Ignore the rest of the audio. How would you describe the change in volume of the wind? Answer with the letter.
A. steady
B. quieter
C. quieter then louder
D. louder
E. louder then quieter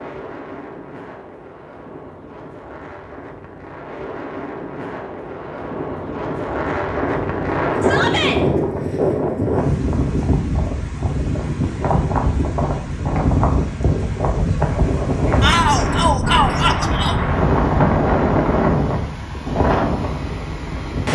D.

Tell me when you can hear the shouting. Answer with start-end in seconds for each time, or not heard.
7.8-8.4, 15.4-17.1.